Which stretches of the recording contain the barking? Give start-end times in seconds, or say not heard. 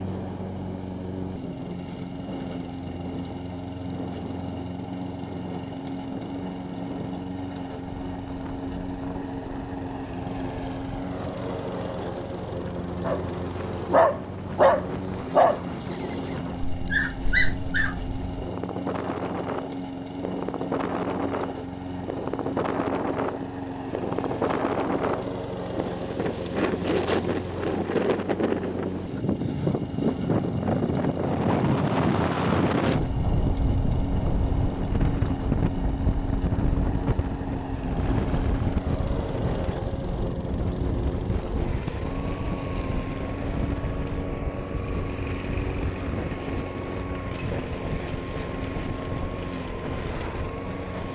13.1-18.1.